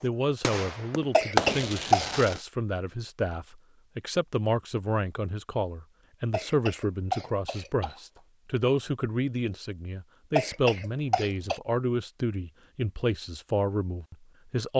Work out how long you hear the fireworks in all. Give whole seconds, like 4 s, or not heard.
2 s.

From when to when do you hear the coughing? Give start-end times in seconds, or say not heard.
1.1-2.0, 6.3-8.0, 10.3-11.6.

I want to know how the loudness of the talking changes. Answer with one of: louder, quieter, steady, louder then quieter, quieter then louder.
steady.